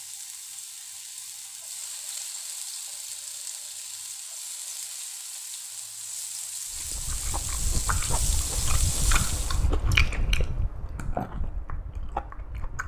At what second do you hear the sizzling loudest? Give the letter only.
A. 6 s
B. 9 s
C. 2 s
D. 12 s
B.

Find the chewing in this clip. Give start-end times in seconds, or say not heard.
6.7-12.8.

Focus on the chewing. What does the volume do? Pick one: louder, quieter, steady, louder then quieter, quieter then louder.
louder then quieter.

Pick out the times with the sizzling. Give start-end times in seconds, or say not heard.
0.0-9.7.